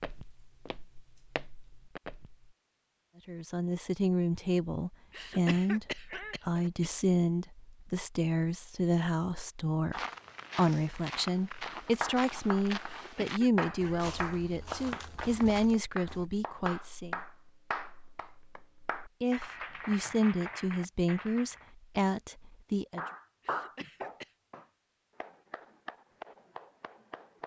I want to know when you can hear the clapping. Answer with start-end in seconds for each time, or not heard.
11.4-21.6, 22.9-27.4.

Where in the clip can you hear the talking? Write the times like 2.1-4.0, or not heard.
3.2-17.1, 19.2-23.0.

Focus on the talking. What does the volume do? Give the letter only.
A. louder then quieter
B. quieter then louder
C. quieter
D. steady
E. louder
D.